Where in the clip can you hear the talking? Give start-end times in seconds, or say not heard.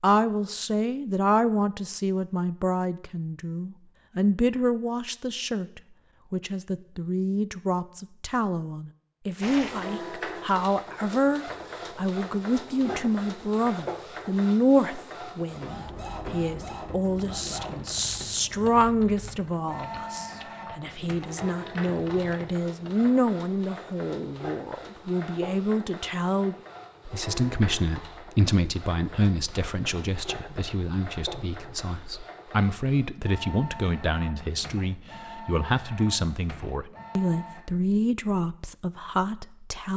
0.0-39.9.